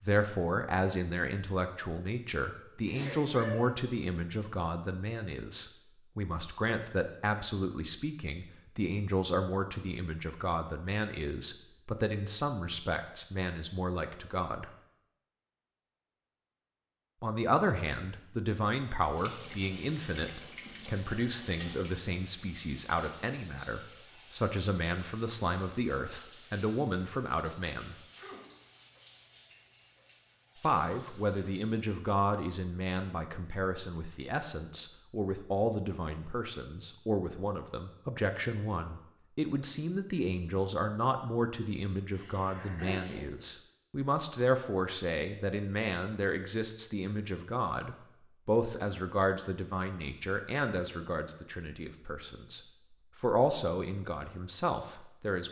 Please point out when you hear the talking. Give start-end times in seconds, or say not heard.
0.0-14.7, 17.2-27.9, 30.6-55.4.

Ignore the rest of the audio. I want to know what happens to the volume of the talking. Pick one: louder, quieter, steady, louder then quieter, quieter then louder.
steady.